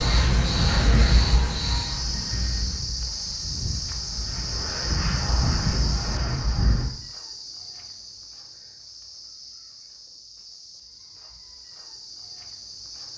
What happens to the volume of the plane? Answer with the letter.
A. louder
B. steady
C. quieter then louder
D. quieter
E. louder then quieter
C.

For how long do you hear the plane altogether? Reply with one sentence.
You can hear the plane for 7 seconds altogether.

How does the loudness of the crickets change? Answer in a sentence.
The volume of the crickets goes down.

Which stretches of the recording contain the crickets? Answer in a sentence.
The crickets can be heard from 0.0 to 13.1 s.